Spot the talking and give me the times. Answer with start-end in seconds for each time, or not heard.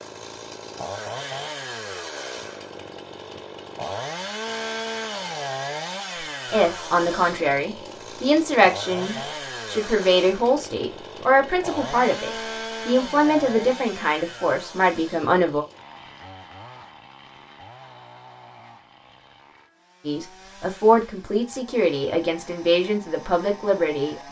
6.2-15.7, 20.1-24.2.